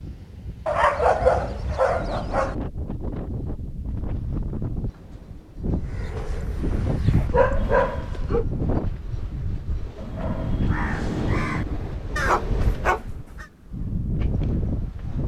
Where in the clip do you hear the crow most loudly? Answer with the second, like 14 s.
11 s.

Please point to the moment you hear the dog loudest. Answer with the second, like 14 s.
1 s.